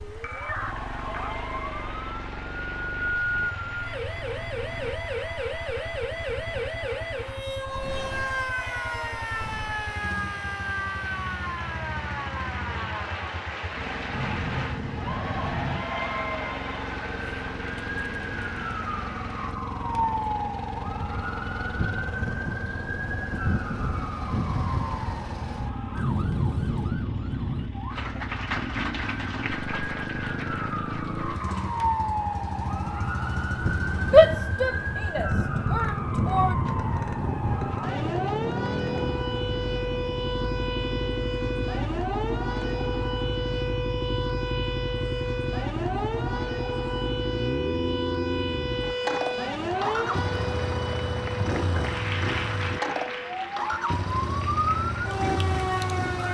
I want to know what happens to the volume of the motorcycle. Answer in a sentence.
The loudness of the motorcycle goes up.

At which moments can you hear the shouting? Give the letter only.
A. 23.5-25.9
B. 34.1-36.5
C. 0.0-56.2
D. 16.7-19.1
B.